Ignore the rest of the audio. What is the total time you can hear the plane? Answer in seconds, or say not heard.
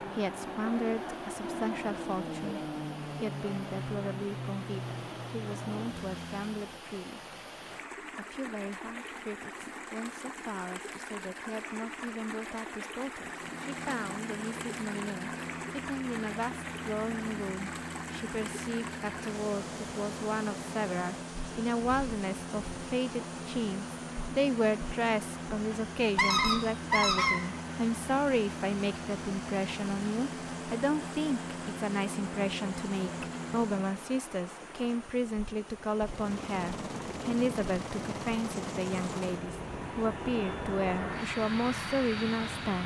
35 s.